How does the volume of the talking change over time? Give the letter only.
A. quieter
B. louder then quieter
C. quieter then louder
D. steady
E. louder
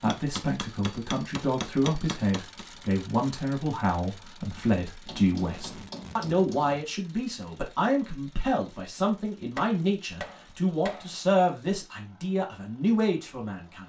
D.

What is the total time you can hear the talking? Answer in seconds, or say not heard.
14 s.